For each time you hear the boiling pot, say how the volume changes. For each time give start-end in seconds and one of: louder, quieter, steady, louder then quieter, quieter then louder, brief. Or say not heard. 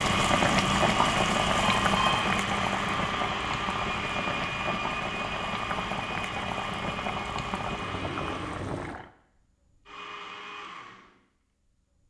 0.0-9.1 quieter.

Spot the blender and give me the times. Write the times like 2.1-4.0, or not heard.
0.0-12.0.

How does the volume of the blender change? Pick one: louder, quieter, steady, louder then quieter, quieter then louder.
quieter.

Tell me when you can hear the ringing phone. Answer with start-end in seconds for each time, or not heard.
1.6-2.2.